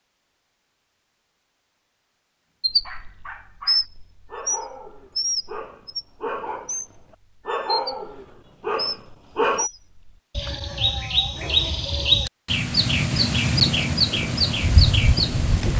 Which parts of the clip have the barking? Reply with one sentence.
You can hear the barking from 2.7 to 9.7 s.